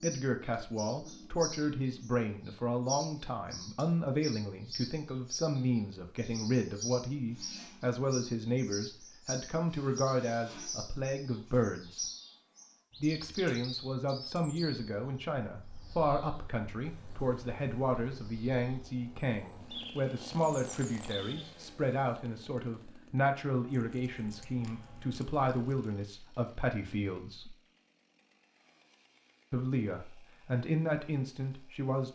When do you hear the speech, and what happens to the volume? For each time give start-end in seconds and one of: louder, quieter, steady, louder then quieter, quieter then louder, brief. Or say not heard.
0.0-12.1 steady
13.0-27.6 steady
29.5-32.1 brief.